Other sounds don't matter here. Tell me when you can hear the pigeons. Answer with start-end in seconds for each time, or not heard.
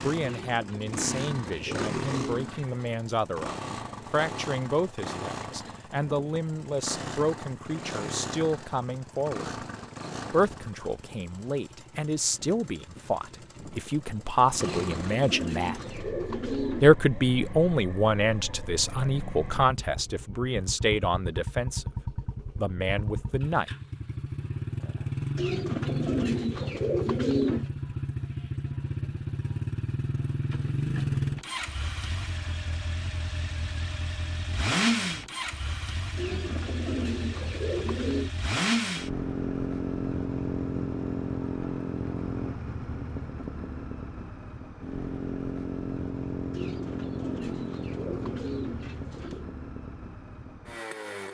0.2-3.0, 14.8-16.9, 25.4-27.6, 36.1-38.3, 46.5-49.5.